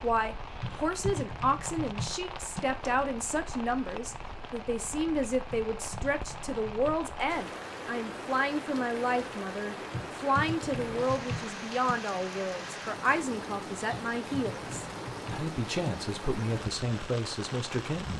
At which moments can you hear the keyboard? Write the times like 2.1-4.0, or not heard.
0.6-2.6, 5.5-7.1, 9.9-11.9, 13.9-15.9.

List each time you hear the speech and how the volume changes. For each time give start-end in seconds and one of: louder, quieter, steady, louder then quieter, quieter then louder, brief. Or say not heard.
0.0-18.1 steady.